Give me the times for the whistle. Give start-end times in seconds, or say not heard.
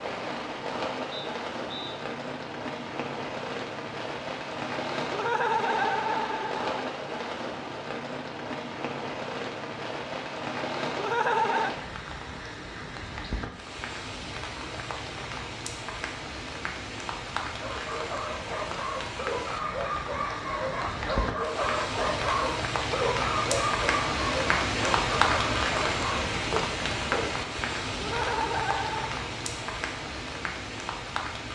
1.1-1.9.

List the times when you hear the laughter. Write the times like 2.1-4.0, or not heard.
5.1-6.8, 10.9-11.7, 27.9-29.1.